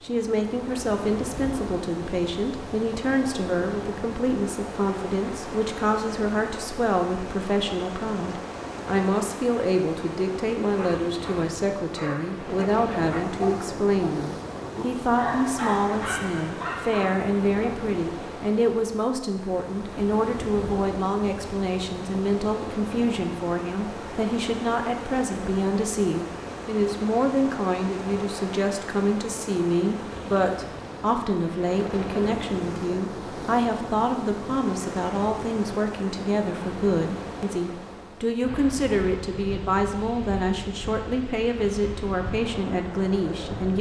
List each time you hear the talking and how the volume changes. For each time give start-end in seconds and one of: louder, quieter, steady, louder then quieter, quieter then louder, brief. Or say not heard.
0.0-43.7 steady.